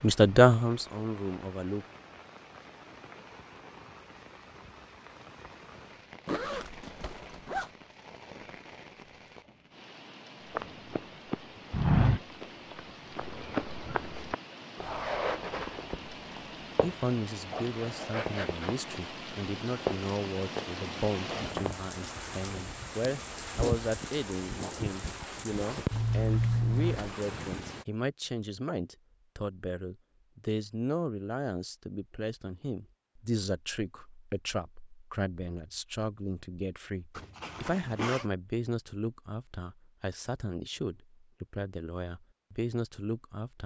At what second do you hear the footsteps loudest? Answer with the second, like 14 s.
12 s.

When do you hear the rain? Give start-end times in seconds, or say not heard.
0.0-27.9.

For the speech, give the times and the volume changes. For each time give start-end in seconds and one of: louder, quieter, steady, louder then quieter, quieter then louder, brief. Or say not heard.
0.0-1.9 brief
16.8-43.6 steady.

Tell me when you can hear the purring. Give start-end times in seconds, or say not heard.
not heard.